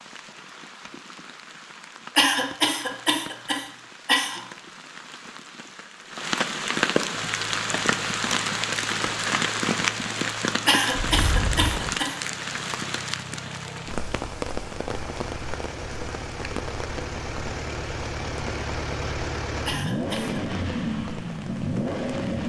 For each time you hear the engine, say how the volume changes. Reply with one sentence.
You can hear the engine from 7.2 to 22.4 s, getting louder.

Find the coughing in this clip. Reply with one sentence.
You can hear the coughing from 2.1 to 4.4 s, from 10.7 to 12.2 s and from 19.6 to 20.4 s.